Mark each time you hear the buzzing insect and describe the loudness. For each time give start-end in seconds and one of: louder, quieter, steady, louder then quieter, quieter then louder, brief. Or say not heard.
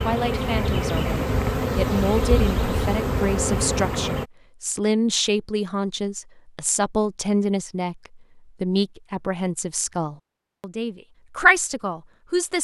0.0-4.2 steady.